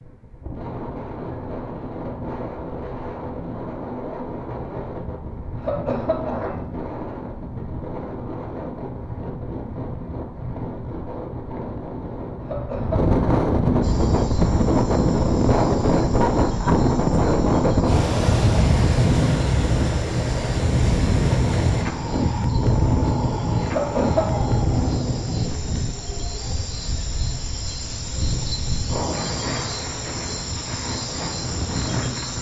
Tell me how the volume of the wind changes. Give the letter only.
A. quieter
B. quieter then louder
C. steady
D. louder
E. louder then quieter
E.